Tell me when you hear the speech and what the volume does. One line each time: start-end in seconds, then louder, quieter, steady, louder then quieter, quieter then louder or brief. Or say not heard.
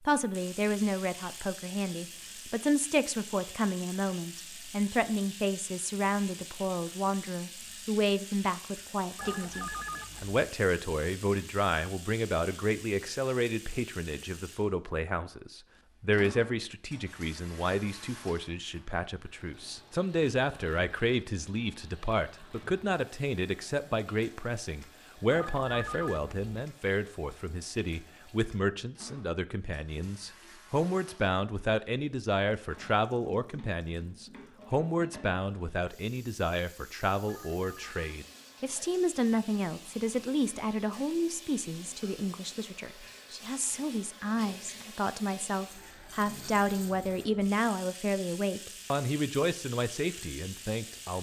0.0-51.1 steady.